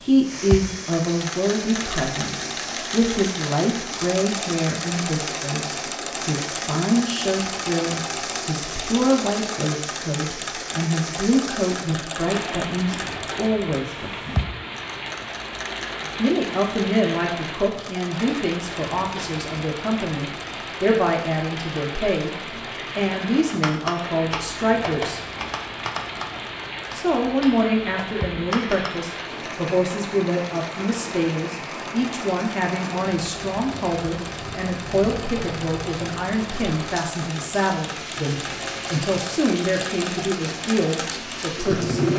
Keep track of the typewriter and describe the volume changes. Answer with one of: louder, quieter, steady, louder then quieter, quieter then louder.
quieter.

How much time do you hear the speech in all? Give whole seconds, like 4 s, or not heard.
38 s.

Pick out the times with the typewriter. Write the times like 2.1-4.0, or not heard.
23.5-28.9.